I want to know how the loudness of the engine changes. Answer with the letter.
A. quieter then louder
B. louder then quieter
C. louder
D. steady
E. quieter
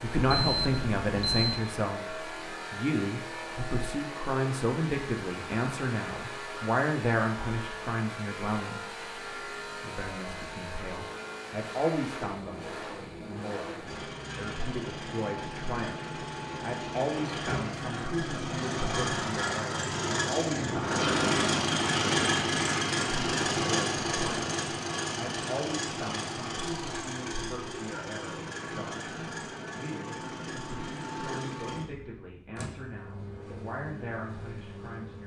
B.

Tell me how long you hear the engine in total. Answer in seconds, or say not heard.
35 s.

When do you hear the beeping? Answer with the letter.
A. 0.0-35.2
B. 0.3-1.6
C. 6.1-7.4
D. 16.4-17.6
B.